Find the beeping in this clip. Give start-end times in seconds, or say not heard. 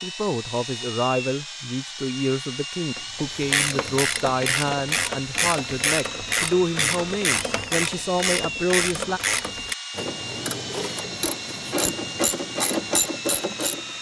not heard.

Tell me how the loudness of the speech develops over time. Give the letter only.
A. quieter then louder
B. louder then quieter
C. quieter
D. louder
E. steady
E.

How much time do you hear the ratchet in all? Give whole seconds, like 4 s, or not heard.
11 s.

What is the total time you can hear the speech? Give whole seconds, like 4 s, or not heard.
9 s.